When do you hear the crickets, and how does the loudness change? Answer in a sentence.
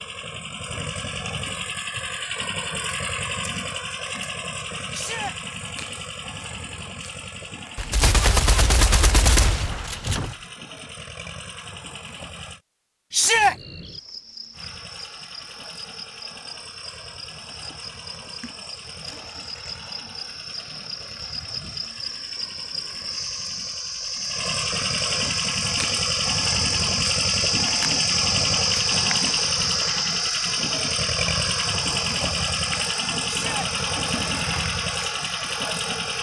You can hear the crickets from 13.3 to 36.1 s, getting louder then quieter.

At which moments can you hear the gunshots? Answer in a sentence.
The gunshots can be heard from 7.8 to 10.3 s.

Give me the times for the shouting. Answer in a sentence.
You can hear the shouting from 4.9 to 5.3 s, from 13.1 to 13.6 s and from 33.2 to 33.7 s.